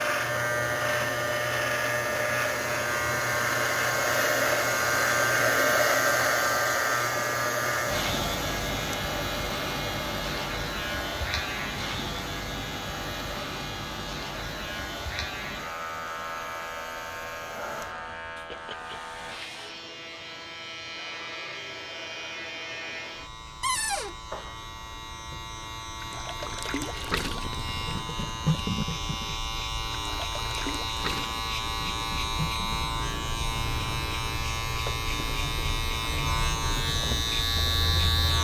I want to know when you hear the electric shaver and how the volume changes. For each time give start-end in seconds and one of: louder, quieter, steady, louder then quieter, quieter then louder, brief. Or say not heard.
0.0-38.3 quieter then louder.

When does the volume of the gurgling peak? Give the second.
29 s.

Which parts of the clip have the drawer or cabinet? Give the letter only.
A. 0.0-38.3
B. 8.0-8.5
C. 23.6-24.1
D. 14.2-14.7
C.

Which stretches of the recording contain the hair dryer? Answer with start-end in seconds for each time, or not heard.
0.1-19.8.